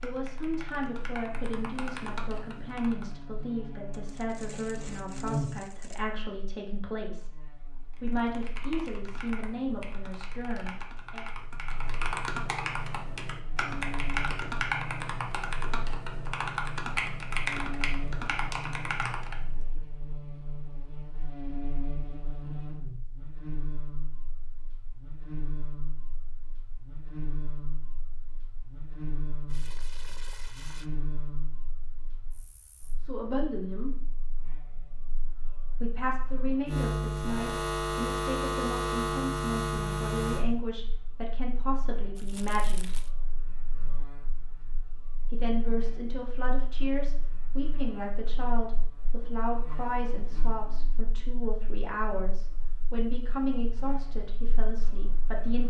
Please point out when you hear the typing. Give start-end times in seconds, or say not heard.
0.0-3.2, 7.9-19.5.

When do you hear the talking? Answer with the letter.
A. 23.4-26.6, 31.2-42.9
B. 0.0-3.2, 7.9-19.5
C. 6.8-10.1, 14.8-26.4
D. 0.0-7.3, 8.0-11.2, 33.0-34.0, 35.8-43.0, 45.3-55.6
D.